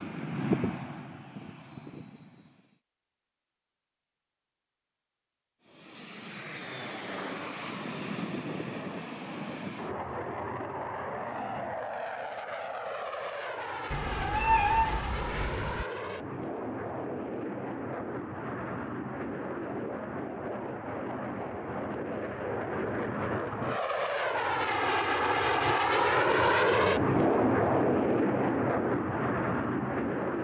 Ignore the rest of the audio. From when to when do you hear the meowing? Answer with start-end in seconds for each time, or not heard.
13.9-15.8.